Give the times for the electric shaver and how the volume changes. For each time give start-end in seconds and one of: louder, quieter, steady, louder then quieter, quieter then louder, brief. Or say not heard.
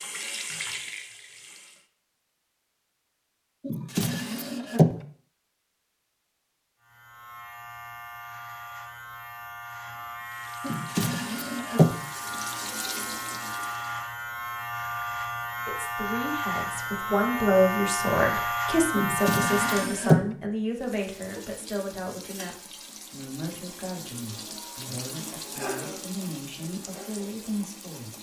6.8-20.1 louder.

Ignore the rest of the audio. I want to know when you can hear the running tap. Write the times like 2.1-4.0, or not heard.
0.0-1.9, 10.2-14.1, 20.7-28.1.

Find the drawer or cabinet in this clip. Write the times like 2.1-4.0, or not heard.
3.6-5.0, 10.7-11.9, 18.9-20.2.